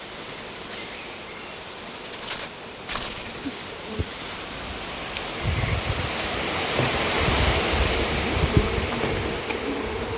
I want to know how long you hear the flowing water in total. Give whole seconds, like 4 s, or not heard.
10 s.